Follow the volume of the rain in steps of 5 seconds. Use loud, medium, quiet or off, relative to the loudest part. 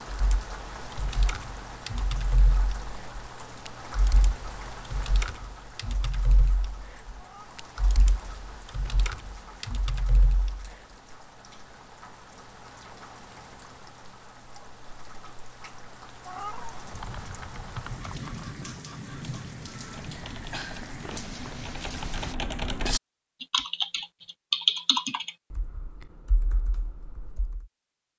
loud, medium, medium, loud, loud, off.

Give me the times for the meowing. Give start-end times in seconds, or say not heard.
7.2-7.6, 16.2-16.8.